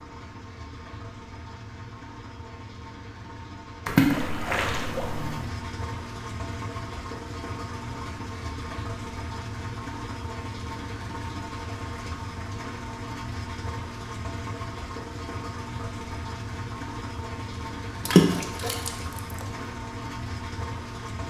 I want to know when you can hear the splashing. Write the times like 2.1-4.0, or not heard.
3.9-5.5, 18.1-19.4.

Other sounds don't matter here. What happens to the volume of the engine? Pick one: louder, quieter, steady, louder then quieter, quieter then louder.
louder.